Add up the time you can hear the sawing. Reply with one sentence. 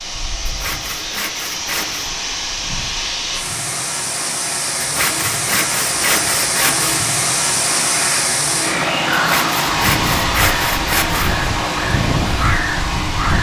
The sawing can be heard for 6 seconds in total.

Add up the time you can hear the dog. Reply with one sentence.
You can't hear the dog here.